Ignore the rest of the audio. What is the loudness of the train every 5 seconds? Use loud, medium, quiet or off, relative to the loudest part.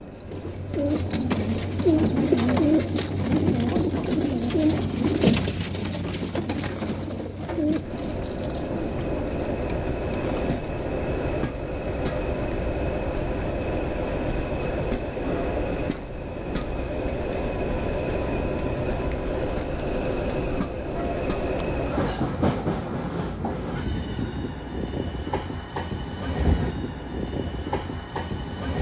quiet, loud, loud, loud, loud, loud.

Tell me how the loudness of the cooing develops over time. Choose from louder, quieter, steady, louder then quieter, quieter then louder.
quieter.